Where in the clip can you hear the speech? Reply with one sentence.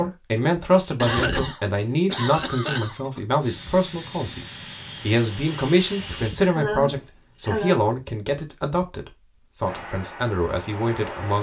The speech can be heard from 0.0 to 11.3 s.